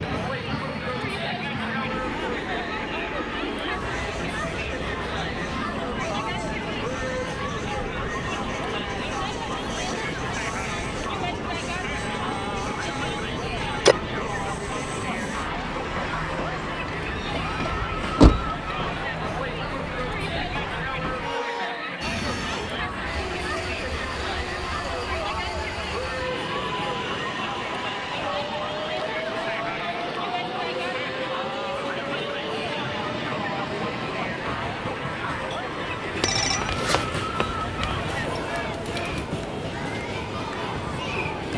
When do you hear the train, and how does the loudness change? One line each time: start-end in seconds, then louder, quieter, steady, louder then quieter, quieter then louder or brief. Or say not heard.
0.0-41.5 steady.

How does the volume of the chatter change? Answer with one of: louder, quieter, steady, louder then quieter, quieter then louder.
steady.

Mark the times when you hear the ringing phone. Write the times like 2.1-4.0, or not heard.
11.9-13.9, 36.2-38.4.